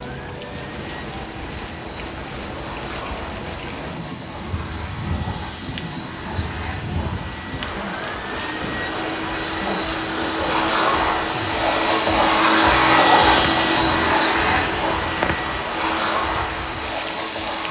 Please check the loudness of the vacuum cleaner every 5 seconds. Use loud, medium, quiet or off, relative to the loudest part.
quiet, quiet, loud, medium.